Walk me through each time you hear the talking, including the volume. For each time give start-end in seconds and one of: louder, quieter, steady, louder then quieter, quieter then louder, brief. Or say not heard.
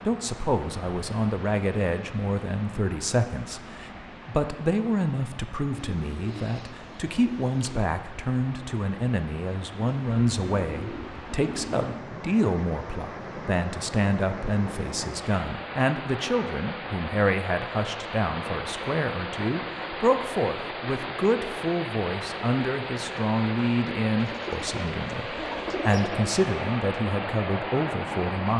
0.0-28.5 steady.